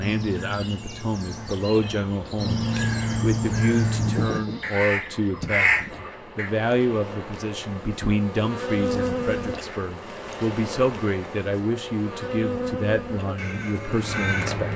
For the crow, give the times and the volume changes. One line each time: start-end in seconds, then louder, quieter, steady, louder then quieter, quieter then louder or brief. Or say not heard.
0.0-6.5 louder
13.2-14.7 brief.